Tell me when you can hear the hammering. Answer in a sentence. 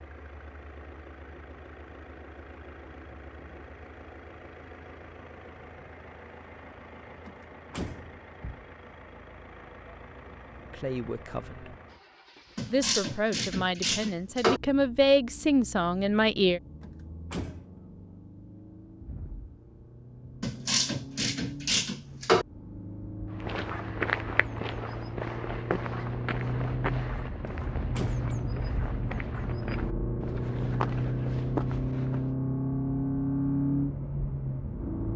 The hammering can't be heard in this clip.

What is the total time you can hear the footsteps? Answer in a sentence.
You can hear the footsteps for 9 seconds altogether.